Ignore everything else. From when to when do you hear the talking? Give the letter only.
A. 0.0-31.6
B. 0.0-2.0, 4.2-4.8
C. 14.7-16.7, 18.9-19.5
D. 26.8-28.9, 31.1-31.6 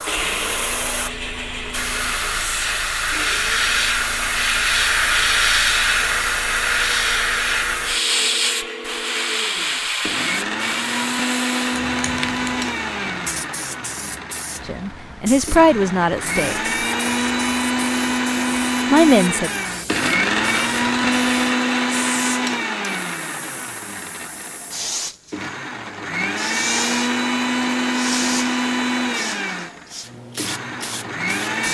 C.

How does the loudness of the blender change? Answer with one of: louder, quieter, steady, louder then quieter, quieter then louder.
louder.